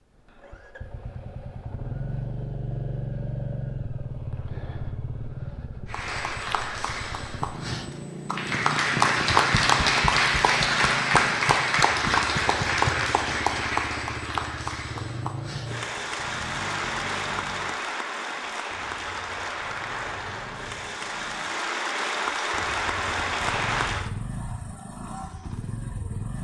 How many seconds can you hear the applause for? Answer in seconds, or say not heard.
18 s.